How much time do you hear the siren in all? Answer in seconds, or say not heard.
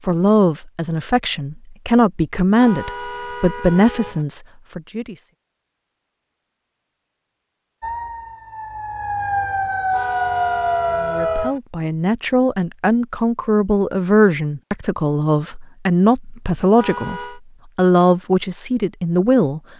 4 s.